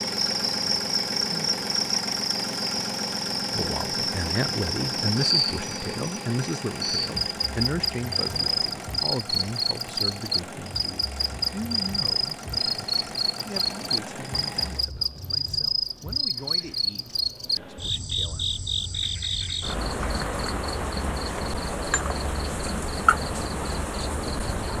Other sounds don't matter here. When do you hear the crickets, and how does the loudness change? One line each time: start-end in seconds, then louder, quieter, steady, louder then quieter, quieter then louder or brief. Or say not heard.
0.0-24.7 steady.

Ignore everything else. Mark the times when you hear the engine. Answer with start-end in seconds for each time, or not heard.
0.0-14.9.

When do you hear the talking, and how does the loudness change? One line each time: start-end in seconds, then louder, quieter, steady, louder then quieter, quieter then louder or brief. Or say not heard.
3.5-18.4 quieter.